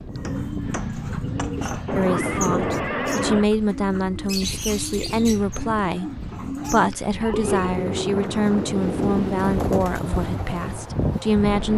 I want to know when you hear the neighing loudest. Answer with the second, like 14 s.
3 s.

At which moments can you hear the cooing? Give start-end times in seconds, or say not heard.
0.1-10.9.